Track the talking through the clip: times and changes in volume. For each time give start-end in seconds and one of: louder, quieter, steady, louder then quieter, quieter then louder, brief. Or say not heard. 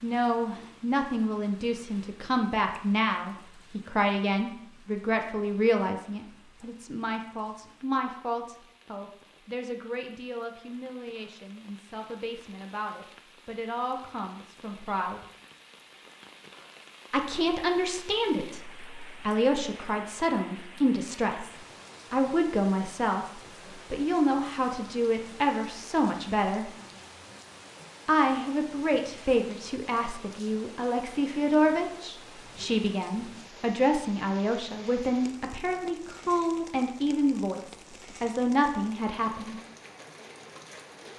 0.0-15.2 quieter
17.1-26.7 steady
28.1-39.5 steady.